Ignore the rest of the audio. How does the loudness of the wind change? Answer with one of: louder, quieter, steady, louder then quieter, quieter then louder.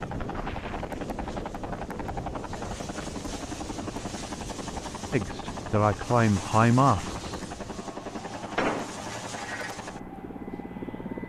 quieter.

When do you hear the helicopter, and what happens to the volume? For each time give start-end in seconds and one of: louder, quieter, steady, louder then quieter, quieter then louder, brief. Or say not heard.
0.0-11.2 steady.